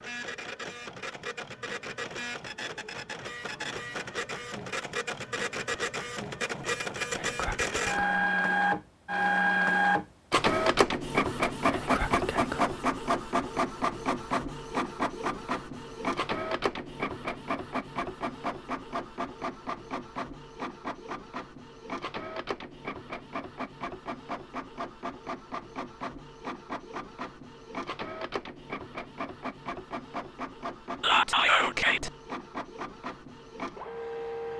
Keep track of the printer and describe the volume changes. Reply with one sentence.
The loudness of the printer goes up, then down.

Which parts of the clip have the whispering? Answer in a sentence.
You can hear the whispering from 7.2 to 8.2 s, from 11.7 to 12.8 s and from 31.0 to 32.1 s.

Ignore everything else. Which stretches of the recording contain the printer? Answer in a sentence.
The printer can be heard from 0.0 to 34.5 s.